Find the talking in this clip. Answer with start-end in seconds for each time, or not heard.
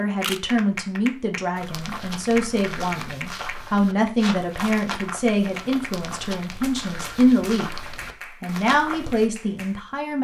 0.0-7.7, 8.4-10.1.